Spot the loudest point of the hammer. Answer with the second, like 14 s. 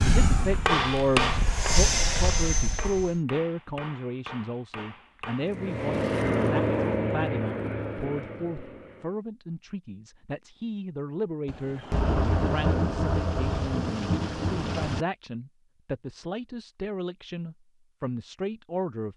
1 s.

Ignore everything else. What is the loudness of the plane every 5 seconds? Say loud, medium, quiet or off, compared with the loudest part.
loud, loud, off, off.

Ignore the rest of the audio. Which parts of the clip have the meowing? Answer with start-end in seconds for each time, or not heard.
not heard.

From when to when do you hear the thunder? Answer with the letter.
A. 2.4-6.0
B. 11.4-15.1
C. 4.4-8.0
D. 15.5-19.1
B.